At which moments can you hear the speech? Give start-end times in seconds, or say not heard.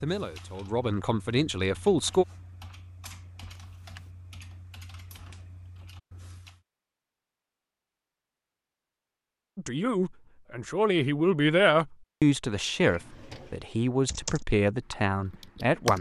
0.0-2.2, 9.6-15.9.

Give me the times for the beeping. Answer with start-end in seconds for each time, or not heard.
not heard.